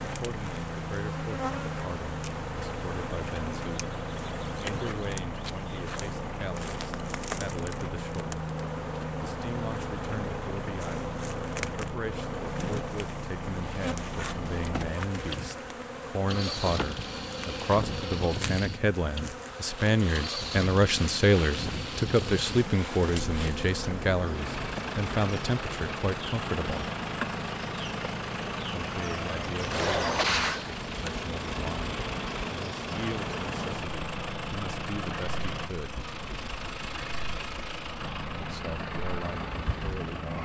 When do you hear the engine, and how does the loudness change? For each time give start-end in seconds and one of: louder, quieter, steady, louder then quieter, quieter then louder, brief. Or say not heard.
0.0-40.4 steady.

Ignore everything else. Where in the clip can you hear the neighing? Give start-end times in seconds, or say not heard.
29.7-30.6.